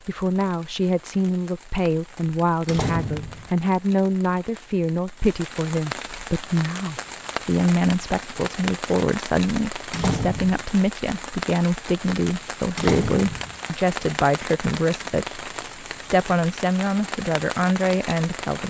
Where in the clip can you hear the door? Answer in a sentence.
You can hear the door from 2.6 to 3.5 s, from 9.9 to 10.6 s and from 12.8 to 13.6 s.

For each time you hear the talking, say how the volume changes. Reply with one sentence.
You can hear the talking from 0.1 to 18.6 s, at a steady volume.